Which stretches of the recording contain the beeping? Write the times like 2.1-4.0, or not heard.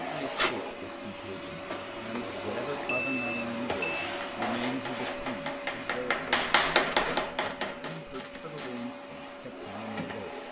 2.9-4.0.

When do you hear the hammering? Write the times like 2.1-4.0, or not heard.
4.0-8.0.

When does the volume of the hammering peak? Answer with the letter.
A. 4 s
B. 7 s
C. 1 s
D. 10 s
B.